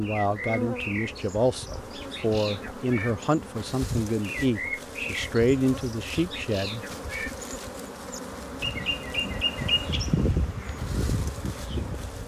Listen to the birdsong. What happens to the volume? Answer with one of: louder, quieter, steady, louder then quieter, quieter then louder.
louder then quieter.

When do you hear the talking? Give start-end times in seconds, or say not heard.
0.0-6.8.